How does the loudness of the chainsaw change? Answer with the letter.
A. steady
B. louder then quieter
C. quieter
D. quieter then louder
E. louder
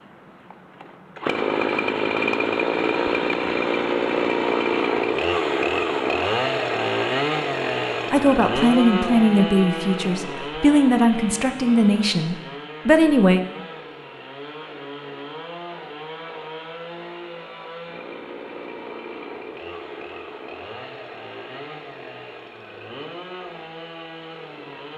C.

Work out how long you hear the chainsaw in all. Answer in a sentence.
You can hear the chainsaw for 25 seconds altogether.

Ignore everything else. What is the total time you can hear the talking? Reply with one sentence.
You can hear the talking for 5 seconds altogether.